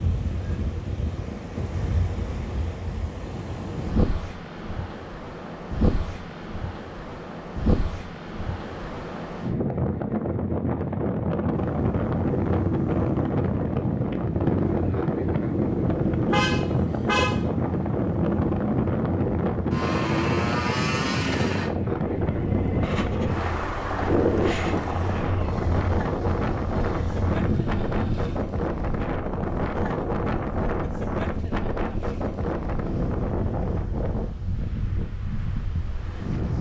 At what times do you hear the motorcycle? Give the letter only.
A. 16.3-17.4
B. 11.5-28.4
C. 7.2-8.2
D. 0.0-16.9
B.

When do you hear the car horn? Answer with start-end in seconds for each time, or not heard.
16.3-17.4.